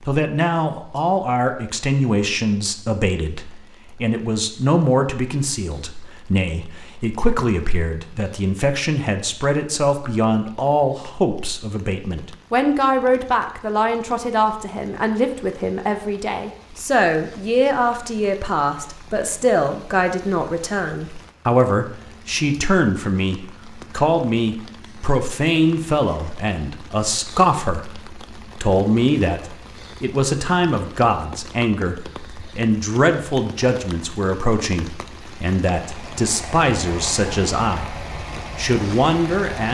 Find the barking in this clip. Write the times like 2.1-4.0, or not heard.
not heard.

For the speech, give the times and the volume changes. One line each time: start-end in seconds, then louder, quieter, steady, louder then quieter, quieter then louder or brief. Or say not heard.
0.0-39.6 steady.